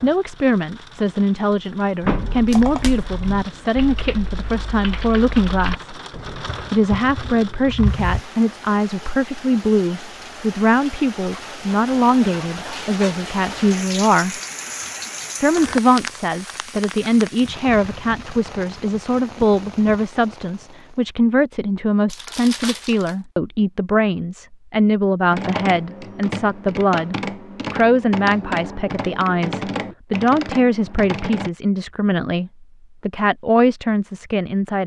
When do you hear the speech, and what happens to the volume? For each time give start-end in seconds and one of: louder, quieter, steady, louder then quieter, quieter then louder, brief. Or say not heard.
0.0-6.0 steady
6.7-14.4 steady
15.4-34.8 steady.